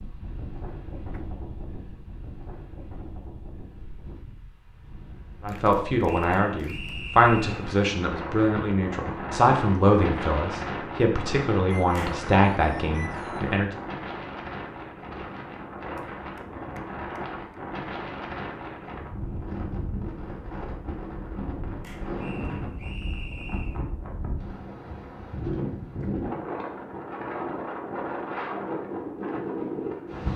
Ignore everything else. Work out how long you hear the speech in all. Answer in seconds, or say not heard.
8 s.